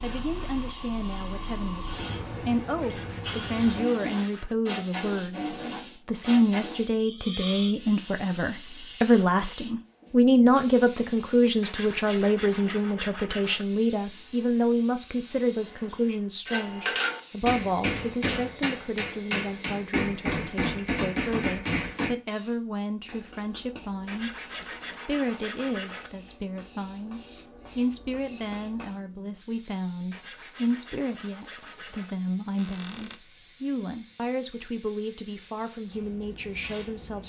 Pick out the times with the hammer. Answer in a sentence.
The hammer can be heard from 16.4 to 22.1 s.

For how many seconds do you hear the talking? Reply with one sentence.
You can hear the talking for 37 seconds altogether.